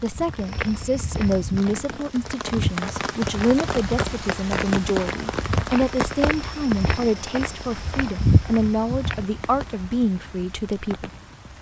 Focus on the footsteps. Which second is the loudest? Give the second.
8 s.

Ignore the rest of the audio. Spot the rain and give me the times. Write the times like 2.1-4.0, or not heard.
0.0-11.5.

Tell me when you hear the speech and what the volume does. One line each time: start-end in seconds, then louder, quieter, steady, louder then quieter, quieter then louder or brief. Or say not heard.
0.0-11.1 steady.